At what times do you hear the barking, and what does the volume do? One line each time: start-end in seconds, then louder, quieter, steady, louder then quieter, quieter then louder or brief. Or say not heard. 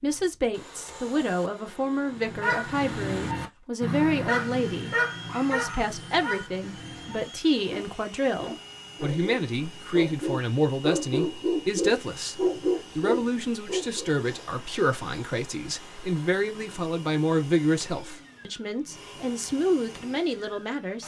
2.2-14.1 quieter then louder.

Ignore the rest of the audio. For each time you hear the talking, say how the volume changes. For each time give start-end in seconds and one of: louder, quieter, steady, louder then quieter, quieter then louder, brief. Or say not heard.
0.0-21.0 steady.